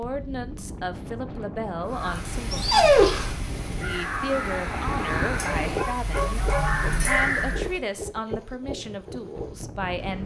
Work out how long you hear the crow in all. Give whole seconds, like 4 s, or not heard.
6 s.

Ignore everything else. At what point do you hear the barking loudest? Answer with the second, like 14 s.
3 s.